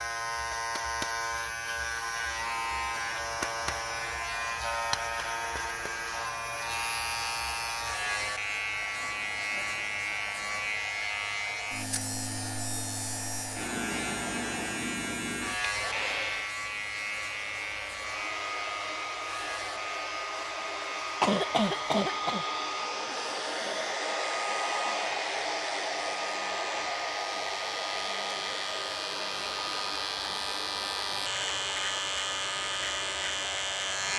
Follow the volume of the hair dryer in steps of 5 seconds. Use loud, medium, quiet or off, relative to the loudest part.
quiet, quiet, medium, medium, loud, loud, medium.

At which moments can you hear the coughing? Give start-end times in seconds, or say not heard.
21.2-22.4.